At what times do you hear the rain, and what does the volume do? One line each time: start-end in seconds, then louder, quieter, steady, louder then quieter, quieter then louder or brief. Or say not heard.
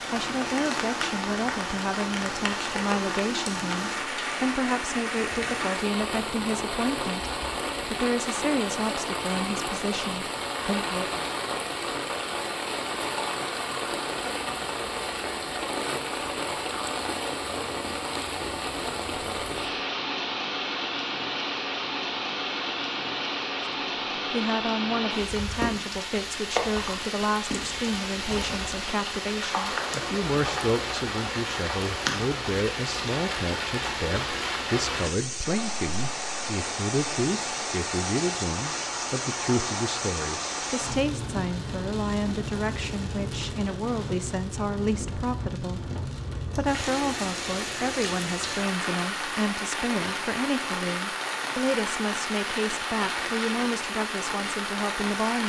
0.0-55.4 steady.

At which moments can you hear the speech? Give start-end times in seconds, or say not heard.
0.1-11.2, 24.3-55.4.